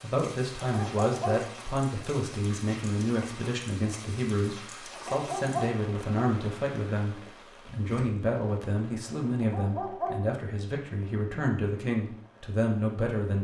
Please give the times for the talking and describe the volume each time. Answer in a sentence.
You can hear the talking from 0.0 to 13.3 s, at a steady volume.